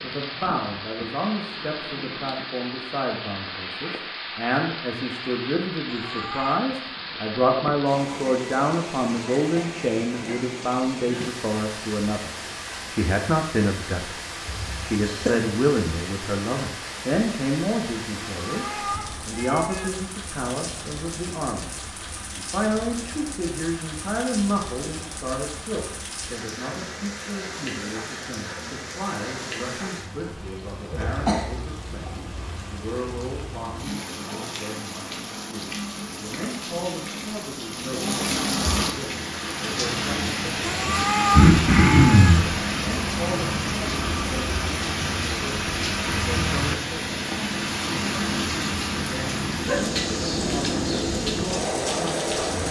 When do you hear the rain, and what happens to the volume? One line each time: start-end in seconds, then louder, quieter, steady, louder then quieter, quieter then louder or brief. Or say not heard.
0.0-52.6 louder.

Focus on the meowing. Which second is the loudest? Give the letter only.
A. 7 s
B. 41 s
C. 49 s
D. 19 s
B.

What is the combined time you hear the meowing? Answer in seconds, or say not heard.
4 s.